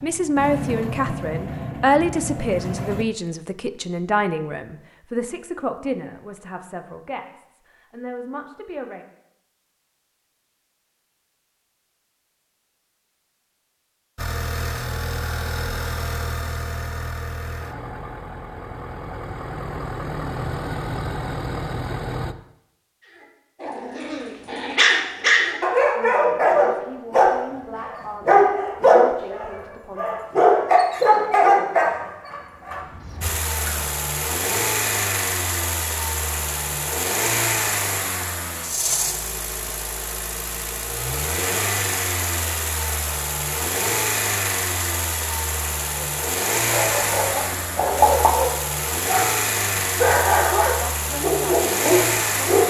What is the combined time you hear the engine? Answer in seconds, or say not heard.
31 s.